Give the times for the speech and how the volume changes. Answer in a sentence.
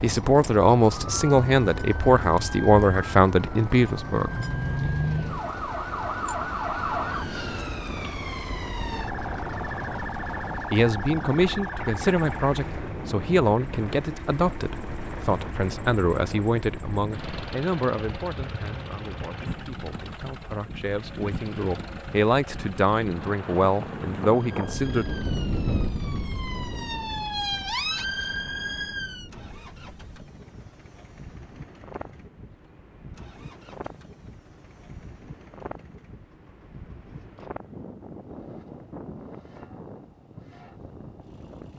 The speech can be heard from 0.0 to 4.3 s, at a steady volume; and from 10.7 to 25.1 s, getting quieter then louder.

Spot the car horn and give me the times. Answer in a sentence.
The car horn can't be heard in this clip.